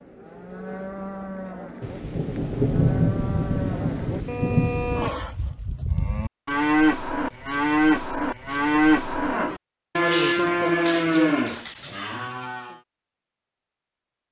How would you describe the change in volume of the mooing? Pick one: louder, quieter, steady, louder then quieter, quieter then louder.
louder.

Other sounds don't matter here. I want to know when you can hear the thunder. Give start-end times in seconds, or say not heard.
1.8-5.1.